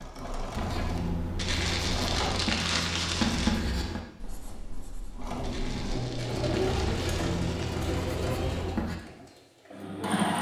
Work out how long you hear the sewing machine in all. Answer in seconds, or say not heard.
8 s.